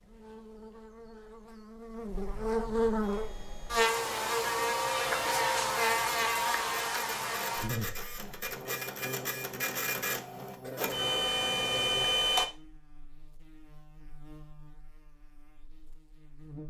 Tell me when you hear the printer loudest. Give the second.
12 s.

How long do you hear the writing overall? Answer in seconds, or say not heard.
not heard.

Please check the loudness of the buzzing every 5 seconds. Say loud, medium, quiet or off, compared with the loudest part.
loud, loud, quiet, quiet.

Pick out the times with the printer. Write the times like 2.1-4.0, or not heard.
3.0-12.5.